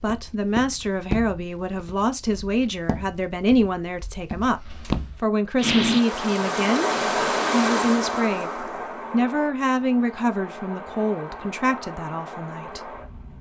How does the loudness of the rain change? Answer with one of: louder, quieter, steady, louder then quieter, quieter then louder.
quieter.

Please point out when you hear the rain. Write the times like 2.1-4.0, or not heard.
5.5-13.3.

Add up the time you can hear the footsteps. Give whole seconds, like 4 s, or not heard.
5 s.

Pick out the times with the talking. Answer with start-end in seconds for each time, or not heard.
0.0-12.9.